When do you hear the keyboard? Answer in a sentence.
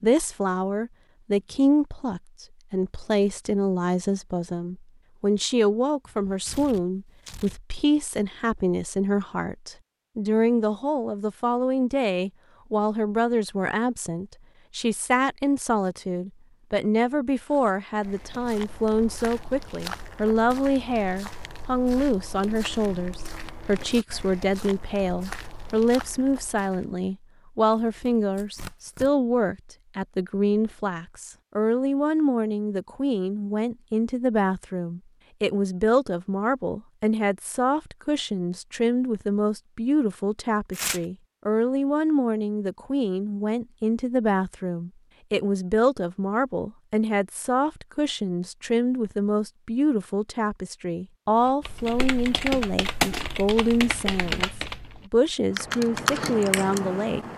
You can hear the keyboard from 51.6 to 57.3 s.